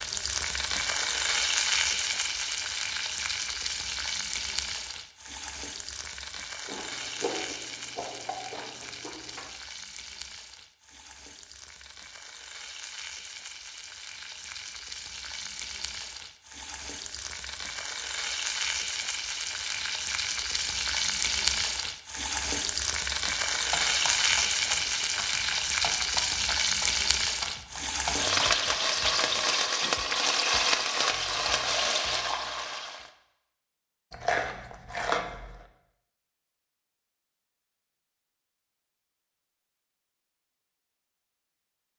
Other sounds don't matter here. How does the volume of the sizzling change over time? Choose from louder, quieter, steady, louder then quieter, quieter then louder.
quieter then louder.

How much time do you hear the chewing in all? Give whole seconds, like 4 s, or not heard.
4 s.